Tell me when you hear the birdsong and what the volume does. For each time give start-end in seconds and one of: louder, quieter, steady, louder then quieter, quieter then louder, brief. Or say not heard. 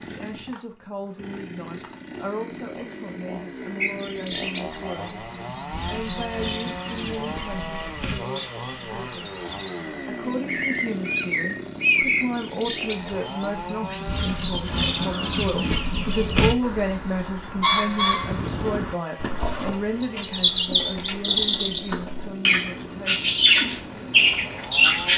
3.8-25.1 louder.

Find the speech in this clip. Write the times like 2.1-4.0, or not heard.
0.1-5.1, 5.8-9.2, 10.0-23.3.